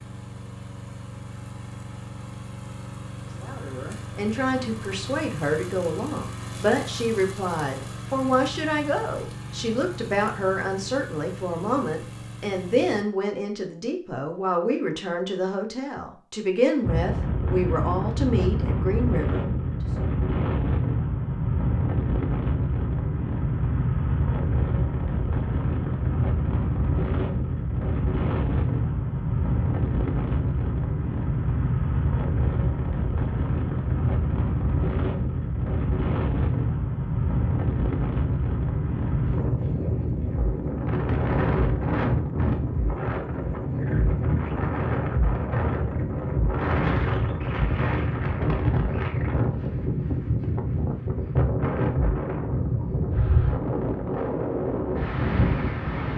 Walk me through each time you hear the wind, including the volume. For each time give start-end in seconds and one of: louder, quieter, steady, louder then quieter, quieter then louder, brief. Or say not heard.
16.8-56.1 steady.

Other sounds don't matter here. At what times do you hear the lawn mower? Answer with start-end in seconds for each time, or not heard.
0.0-13.1.